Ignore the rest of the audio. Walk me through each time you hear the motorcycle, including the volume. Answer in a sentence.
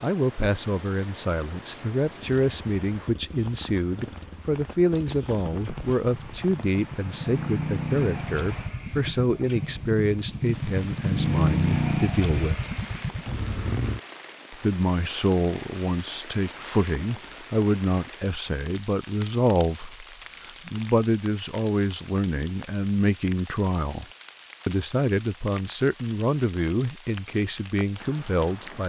You can hear the motorcycle from 2.1 to 14.0 s, getting louder.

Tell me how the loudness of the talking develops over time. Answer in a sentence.
The loudness of the talking stays about the same.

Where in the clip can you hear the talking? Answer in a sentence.
You can hear the talking from 0.0 to 12.6 s, from 14.5 to 24.1 s and from 24.6 to 28.8 s.